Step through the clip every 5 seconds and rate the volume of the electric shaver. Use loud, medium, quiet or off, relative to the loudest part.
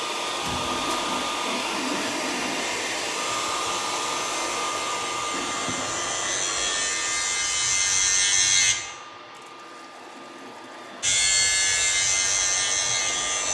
quiet, loud, loud.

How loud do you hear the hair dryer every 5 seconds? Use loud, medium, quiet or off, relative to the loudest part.
loud, medium, medium.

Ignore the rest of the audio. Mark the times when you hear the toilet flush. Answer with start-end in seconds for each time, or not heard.
0.4-2.8, 5.3-6.8, 9.1-11.2.